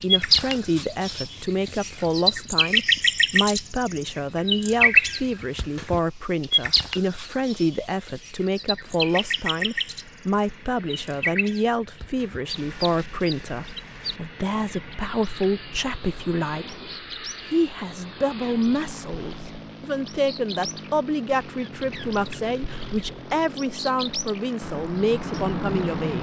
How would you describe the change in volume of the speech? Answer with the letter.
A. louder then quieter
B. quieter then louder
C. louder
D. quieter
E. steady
E.